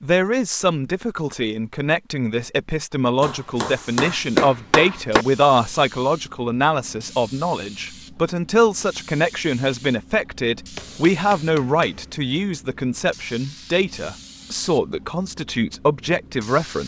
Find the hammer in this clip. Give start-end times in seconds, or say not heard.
3.2-5.2, 10.8-12.1.